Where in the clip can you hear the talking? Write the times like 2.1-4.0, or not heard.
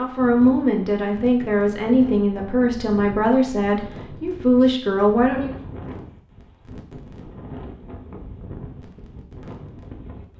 0.0-5.5.